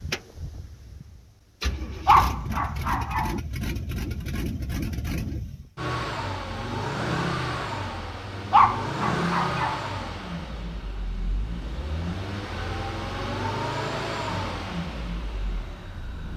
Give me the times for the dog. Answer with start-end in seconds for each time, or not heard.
2.0-3.4, 8.5-9.8.